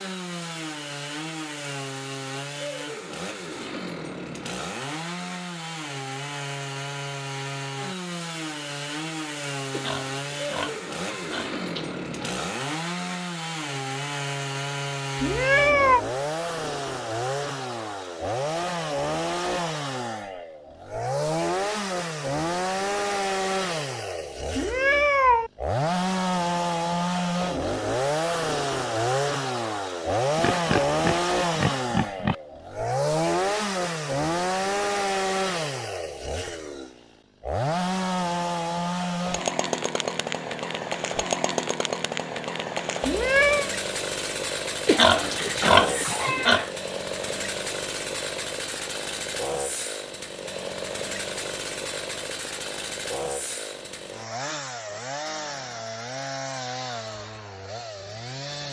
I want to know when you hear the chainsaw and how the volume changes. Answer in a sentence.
You can hear the chainsaw from 0.0 to 58.6 s, getting louder then quieter.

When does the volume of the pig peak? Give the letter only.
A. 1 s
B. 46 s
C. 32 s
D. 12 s
B.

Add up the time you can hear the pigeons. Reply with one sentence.
The pigeons can't be heard in this clip.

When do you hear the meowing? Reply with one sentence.
The meowing can be heard from 15.2 to 16.1 s, from 24.5 to 25.5 s and from 43.0 to 43.7 s.